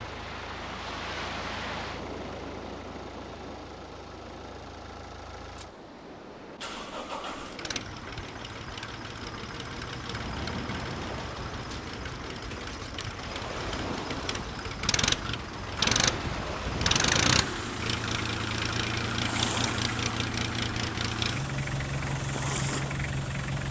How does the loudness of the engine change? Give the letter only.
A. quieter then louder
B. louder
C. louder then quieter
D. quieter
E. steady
B.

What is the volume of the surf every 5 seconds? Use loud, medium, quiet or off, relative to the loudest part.
loud, medium, loud, loud, loud.